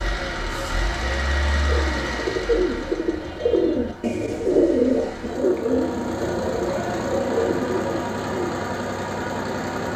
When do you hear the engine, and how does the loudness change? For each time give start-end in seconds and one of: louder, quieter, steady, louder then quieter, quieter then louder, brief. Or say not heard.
0.0-9.9 quieter then louder.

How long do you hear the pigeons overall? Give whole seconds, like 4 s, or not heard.
7 s.